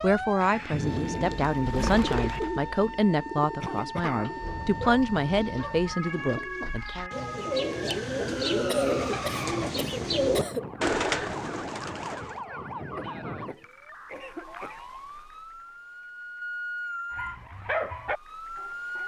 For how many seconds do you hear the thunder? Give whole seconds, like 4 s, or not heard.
2 s.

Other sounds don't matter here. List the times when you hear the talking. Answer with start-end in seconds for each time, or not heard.
0.0-7.1.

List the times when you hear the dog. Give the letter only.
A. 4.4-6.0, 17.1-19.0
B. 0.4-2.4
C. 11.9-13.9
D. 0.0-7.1
A.